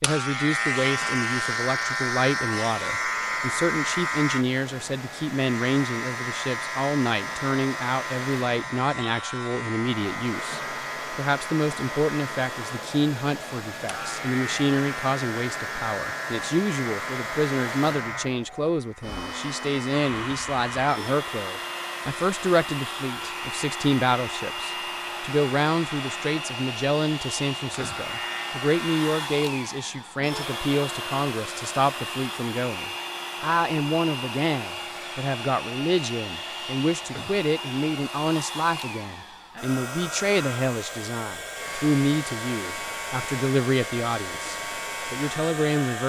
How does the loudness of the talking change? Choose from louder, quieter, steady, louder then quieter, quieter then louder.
steady.